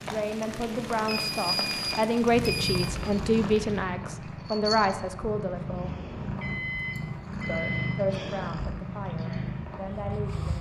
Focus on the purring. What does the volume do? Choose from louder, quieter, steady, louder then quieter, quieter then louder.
steady.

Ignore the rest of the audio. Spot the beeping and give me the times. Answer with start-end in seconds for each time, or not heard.
1.0-3.0, 6.4-8.0.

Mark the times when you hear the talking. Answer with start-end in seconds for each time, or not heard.
0.0-5.9, 7.5-10.5.